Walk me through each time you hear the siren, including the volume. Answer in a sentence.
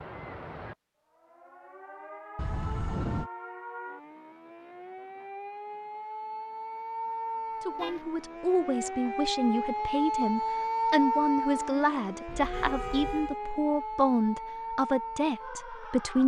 You can hear the siren from 0.0 to 16.2 s, getting louder then quieter.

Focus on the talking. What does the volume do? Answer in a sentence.
The volume of the talking stays about the same.